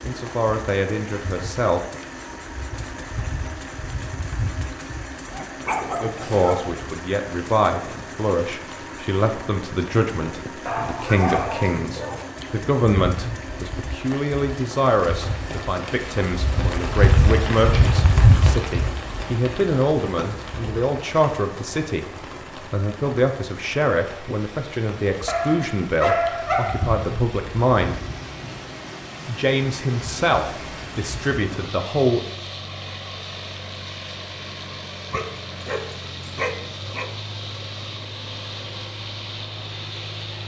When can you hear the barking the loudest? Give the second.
26 s.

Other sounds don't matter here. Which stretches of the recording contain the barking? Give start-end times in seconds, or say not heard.
5.3-6.8, 10.7-12.2, 25.2-26.9, 35.1-37.1.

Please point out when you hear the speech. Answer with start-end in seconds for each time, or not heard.
0.1-1.8, 6.0-22.1, 22.7-28.0, 29.2-32.2.